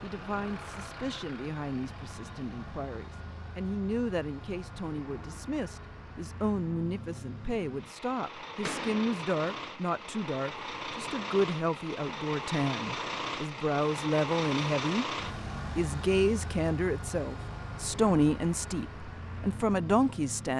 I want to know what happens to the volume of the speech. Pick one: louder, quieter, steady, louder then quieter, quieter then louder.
louder.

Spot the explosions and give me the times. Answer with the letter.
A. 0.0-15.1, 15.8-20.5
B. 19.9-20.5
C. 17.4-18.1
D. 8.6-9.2
D.